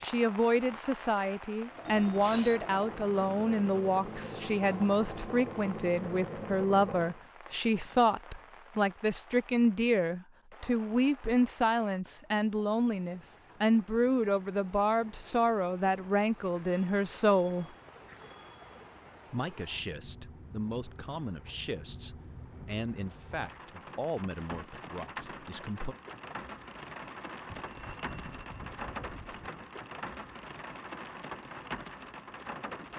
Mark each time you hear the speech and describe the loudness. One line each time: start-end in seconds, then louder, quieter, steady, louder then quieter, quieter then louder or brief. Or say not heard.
0.0-17.7 steady
19.3-25.9 quieter.